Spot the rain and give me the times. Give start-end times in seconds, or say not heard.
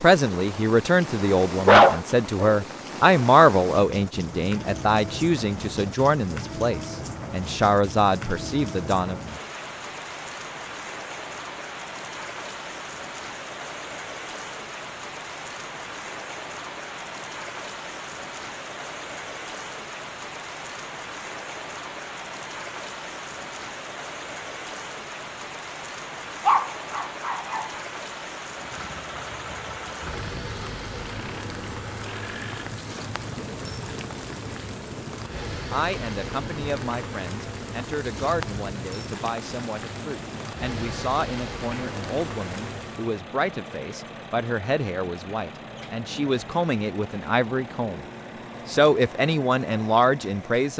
0.0-43.2.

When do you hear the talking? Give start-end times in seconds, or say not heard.
0.0-9.2, 35.7-48.0, 48.6-50.7.